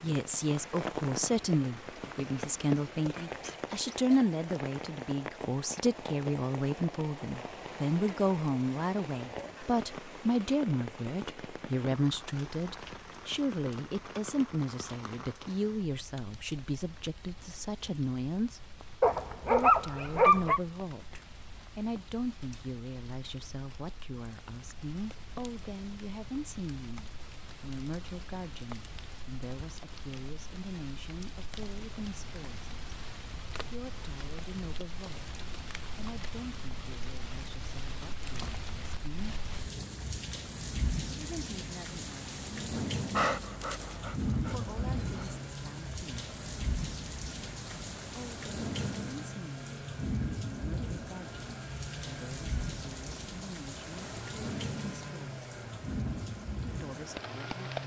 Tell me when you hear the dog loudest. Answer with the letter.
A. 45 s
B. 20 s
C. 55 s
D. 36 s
B.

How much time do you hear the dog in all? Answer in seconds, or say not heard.
4 s.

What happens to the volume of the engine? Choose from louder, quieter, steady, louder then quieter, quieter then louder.
steady.